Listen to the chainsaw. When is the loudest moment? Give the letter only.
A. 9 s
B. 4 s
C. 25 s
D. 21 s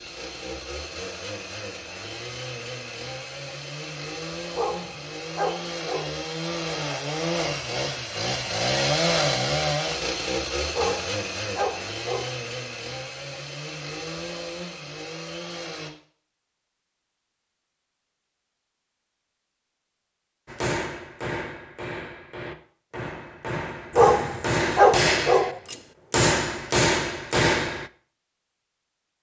A.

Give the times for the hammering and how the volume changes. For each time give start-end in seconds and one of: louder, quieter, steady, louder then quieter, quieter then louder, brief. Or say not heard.
20.4-27.9 louder.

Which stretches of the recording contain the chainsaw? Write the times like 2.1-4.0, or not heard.
0.0-15.9.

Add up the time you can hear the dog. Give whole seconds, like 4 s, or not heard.
5 s.